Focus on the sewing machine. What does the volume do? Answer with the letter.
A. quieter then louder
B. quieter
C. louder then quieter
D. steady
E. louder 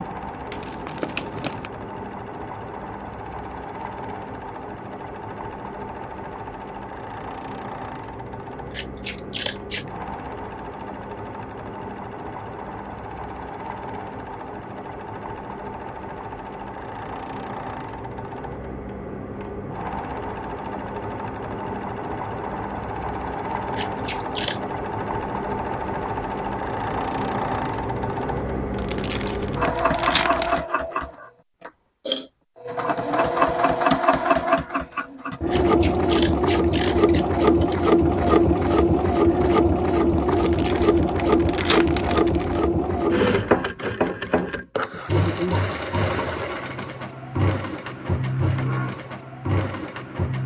E.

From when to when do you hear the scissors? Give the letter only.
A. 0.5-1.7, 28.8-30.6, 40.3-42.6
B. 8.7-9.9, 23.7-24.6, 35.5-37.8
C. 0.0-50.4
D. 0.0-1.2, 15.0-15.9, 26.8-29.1
B.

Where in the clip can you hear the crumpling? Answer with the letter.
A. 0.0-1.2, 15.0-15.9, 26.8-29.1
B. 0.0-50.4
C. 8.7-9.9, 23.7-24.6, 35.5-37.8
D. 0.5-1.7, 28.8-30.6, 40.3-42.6
D.